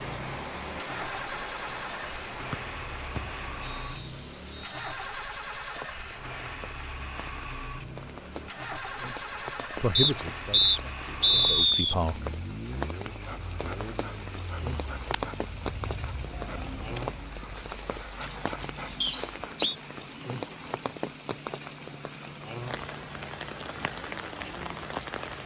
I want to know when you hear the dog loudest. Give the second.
18 s.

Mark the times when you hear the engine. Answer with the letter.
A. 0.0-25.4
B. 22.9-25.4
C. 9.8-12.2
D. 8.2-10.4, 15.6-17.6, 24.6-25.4
A.